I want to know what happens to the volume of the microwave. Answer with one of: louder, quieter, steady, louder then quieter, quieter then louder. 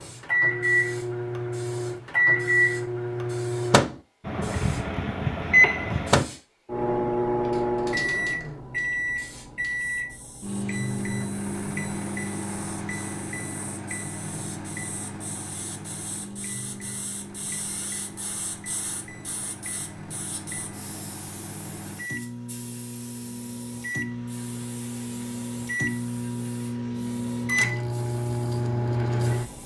quieter then louder.